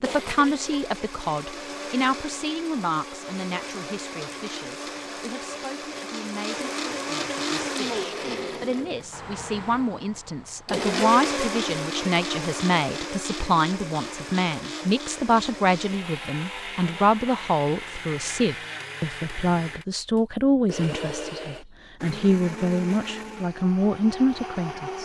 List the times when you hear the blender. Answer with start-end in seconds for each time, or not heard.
0.0-25.0.